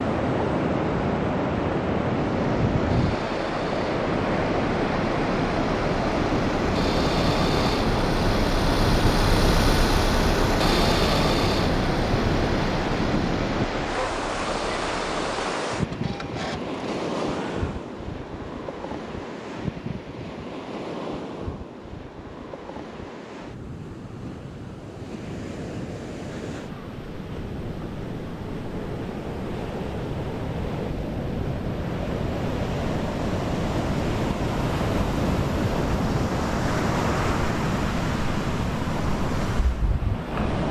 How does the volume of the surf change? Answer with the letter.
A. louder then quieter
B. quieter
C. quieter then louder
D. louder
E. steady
C.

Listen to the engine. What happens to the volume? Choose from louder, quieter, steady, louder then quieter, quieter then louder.
louder then quieter.